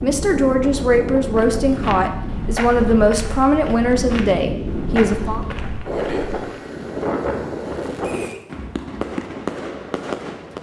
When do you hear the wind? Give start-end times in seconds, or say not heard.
0.0-8.3.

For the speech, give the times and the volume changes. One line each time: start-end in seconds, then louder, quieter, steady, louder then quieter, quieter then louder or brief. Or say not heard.
0.0-5.4 steady.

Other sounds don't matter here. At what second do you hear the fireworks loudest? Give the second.
9 s.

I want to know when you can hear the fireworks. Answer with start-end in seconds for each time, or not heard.
7.6-10.5.